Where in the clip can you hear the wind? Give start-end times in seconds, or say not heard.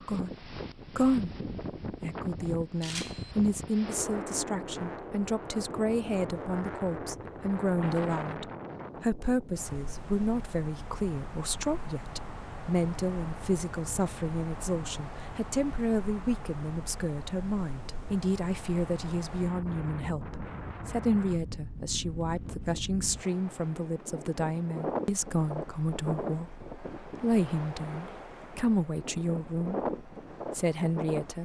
0.0-31.3.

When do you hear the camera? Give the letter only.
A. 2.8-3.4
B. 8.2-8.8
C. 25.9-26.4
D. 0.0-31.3
A.